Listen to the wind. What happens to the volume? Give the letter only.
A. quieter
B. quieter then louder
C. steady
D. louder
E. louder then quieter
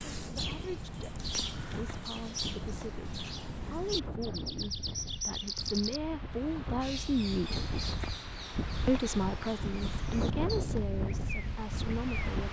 D.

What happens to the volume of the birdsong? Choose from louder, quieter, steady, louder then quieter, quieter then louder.
quieter.